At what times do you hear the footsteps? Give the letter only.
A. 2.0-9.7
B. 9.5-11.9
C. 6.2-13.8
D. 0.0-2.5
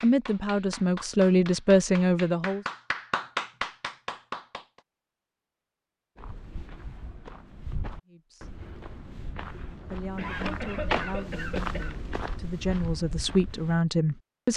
C.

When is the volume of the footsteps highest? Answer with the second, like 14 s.
11 s.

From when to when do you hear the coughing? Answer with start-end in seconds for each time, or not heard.
9.5-11.9.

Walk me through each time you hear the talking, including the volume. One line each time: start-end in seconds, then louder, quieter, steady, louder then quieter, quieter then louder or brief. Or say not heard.
0.0-2.6 brief
8.1-8.6 brief
9.8-14.5 louder.